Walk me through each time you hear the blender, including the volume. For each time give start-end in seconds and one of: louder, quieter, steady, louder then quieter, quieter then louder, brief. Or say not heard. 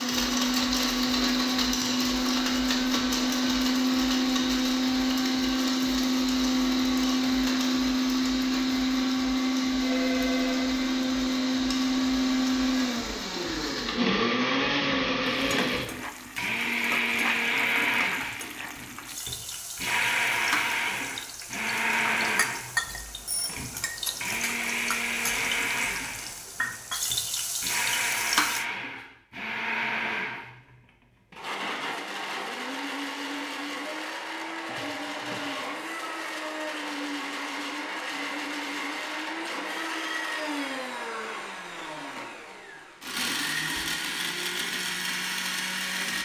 0.0-46.2 quieter.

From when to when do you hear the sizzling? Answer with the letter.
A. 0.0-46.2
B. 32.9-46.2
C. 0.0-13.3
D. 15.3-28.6
D.